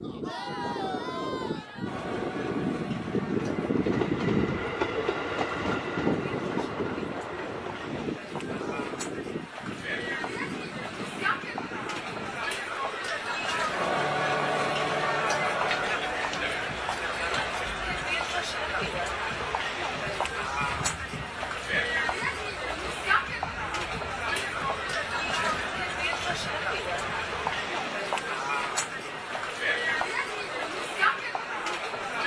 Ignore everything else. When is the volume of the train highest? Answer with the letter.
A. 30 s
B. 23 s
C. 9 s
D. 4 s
D.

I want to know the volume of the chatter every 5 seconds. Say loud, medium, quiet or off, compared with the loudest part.
medium, medium, loud, loud, loud, loud, loud.